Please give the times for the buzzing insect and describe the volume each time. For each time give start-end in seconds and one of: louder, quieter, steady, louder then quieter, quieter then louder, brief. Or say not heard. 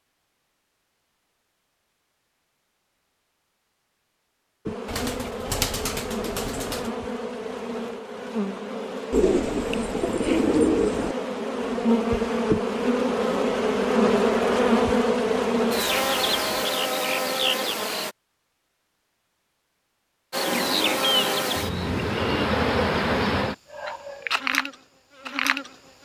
4.7-18.1 louder
20.3-26.0 quieter.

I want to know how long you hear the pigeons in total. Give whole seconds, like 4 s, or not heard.
6 s.